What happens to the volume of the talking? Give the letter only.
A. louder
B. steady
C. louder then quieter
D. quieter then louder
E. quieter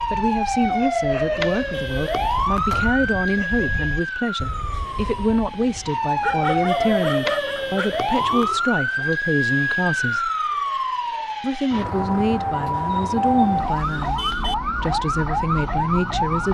B.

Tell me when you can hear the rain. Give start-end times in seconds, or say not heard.
not heard.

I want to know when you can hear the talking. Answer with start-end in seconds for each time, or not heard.
0.1-10.3, 11.4-16.4.